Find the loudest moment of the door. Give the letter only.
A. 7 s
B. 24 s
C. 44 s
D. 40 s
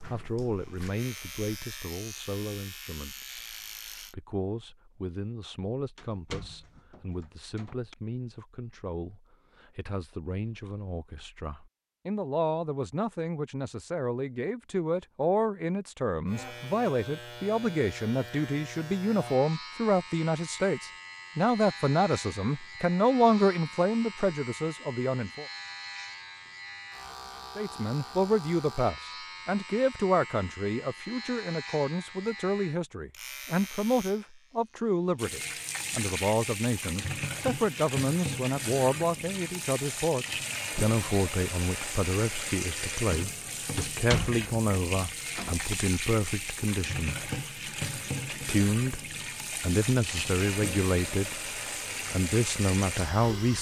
C.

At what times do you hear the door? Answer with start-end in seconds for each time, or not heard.
6.0-8.0, 43.8-45.8.